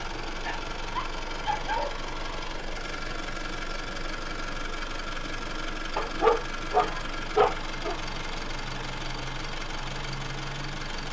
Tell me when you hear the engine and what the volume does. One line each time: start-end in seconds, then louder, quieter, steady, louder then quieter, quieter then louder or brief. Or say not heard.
0.0-11.0 steady.